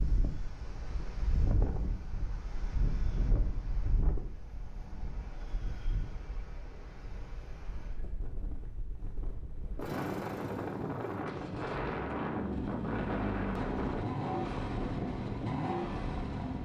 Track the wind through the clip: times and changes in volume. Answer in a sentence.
The wind can be heard from 0.0 to 16.6 s, getting quieter then louder.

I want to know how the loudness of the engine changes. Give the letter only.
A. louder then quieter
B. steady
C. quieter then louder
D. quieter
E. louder
E.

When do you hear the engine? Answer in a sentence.
The engine can be heard from 9.8 to 16.6 s.